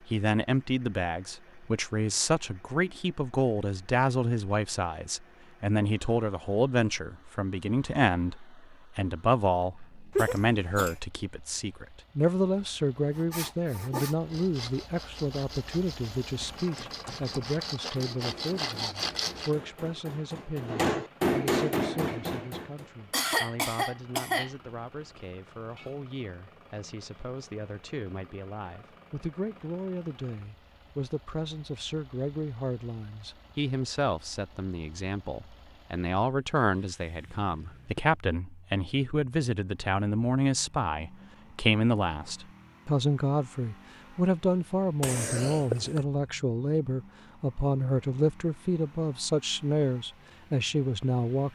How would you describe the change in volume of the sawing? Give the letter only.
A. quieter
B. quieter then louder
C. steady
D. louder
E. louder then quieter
B.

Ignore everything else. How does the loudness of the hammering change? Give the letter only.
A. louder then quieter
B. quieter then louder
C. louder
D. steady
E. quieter
C.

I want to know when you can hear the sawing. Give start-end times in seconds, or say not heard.
13.2-19.6.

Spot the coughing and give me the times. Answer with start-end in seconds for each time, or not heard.
10.2-10.9, 23.1-24.5, 45.0-46.0.